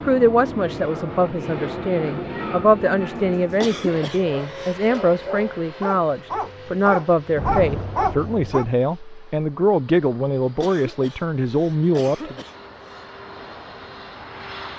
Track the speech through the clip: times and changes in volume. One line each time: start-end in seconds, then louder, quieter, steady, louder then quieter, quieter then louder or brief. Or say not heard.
0.0-12.3 steady.